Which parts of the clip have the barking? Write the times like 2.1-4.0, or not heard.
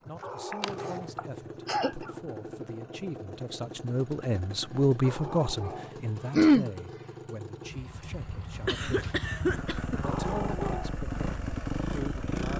0.2-1.2, 5.0-6.0, 10.0-11.0.